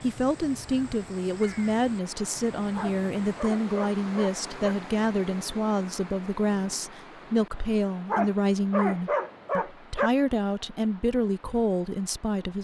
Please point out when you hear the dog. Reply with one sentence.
The dog can be heard from 2.8 to 4.8 s and from 8.1 to 10.1 s.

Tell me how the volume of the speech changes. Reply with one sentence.
The volume of the speech stays about the same.